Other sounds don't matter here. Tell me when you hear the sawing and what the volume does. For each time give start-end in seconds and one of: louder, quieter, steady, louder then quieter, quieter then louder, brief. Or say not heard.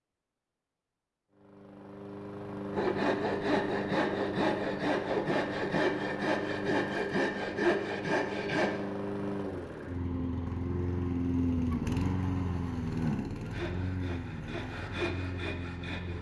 2.7-8.8 steady
13.4-16.1 brief.